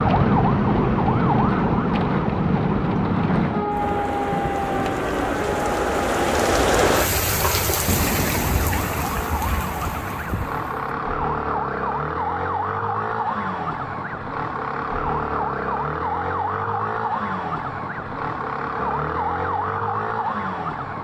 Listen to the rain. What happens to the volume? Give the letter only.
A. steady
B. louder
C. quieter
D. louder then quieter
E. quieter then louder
D.